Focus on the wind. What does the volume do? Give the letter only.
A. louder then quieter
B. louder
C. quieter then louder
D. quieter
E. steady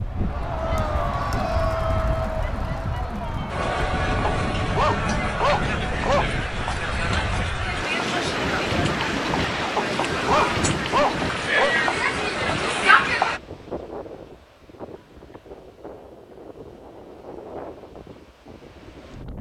A.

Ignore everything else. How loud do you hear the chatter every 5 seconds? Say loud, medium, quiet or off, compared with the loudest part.
medium, medium, loud, off.